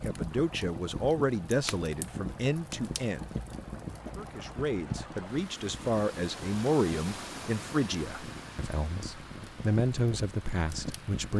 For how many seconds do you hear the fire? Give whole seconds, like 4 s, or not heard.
11 s.